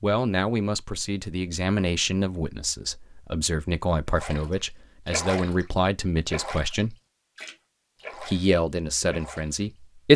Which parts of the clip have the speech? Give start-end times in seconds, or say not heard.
0.0-7.0, 8.2-10.1.